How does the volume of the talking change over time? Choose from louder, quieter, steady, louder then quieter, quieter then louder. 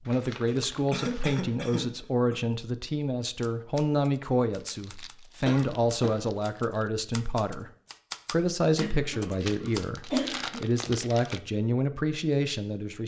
steady.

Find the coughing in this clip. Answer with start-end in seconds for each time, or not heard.
0.5-2.4, 5.5-6.3, 8.8-10.7.